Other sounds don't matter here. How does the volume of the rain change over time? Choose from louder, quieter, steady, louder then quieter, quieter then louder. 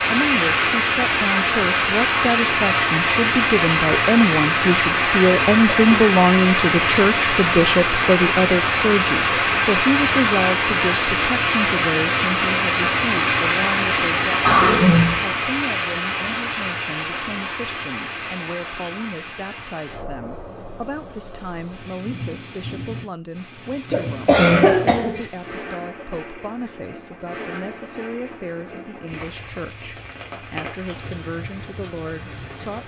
quieter.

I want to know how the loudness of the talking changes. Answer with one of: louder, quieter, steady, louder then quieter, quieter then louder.
quieter.